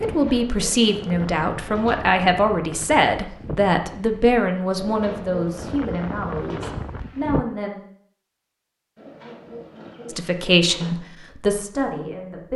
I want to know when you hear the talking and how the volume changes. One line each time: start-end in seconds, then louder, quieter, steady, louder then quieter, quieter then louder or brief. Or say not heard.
0.0-7.8 quieter
10.1-12.5 brief.